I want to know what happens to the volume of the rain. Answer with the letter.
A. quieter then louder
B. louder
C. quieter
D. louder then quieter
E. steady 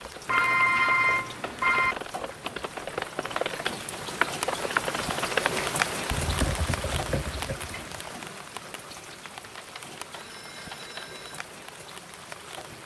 D.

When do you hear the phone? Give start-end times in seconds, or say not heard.
0.2-1.9, 9.4-11.4.